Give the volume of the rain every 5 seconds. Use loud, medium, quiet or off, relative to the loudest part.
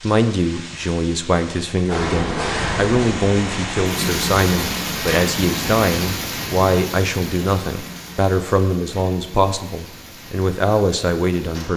loud, loud, quiet.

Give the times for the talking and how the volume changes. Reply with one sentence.
The talking can be heard from 0.0 to 11.7 s, at a steady volume.